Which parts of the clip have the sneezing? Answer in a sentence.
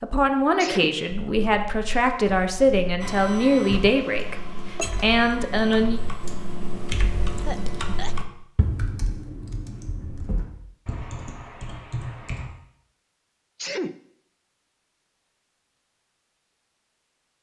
The sneezing can be heard from 0.6 to 1.0 s, from 7.5 to 8.2 s and from 13.6 to 14.0 s.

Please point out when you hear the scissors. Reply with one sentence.
You can't hear the scissors here.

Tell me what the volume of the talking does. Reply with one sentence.
The loudness of the talking stays about the same.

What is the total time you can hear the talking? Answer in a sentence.
The talking can be heard for 6 seconds in total.